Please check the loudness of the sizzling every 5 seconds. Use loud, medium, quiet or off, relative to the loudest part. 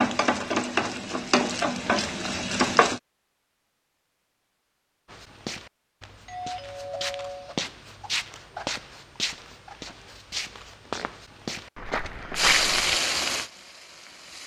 loud, off, loud.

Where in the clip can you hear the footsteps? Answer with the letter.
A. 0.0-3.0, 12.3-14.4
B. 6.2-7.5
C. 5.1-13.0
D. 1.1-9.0
C.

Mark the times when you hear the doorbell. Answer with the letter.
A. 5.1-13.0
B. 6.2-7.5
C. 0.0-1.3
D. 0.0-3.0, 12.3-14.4
B.